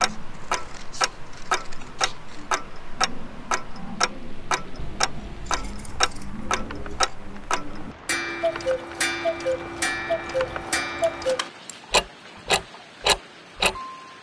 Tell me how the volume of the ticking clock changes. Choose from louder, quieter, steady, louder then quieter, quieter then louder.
louder.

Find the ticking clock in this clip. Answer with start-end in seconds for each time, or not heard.
0.0-13.8.